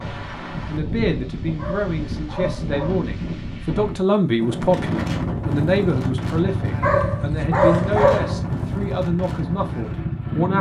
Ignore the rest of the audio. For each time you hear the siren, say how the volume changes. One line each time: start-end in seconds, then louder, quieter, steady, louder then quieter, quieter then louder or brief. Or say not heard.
not heard.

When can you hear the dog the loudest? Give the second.
8 s.